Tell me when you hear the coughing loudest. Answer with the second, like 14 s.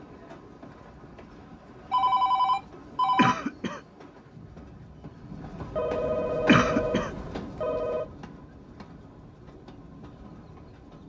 7 s.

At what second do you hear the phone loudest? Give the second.
2 s.